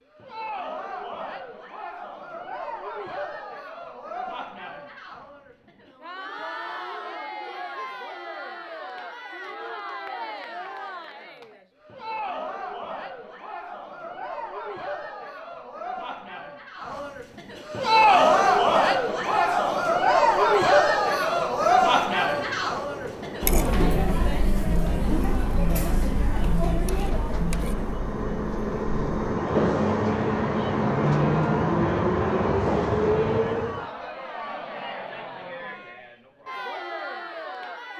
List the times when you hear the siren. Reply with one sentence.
You can't hear the siren here.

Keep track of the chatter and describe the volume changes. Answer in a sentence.
The volume of the chatter goes up, then down.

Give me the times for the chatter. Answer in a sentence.
You can hear the chatter from 0.1 to 37.9 s.